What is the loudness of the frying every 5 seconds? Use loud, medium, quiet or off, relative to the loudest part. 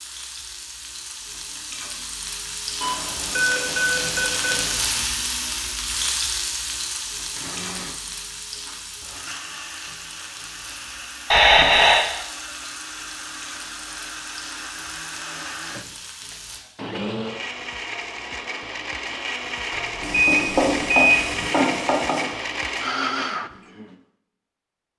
medium, medium, quiet, quiet, loud.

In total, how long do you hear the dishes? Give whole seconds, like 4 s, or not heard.
not heard.